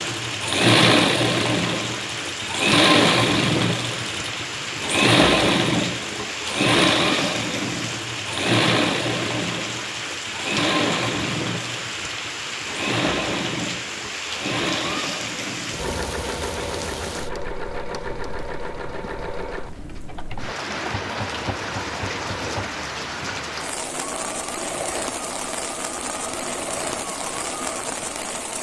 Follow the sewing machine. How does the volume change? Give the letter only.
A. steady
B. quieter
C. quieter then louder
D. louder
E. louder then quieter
B.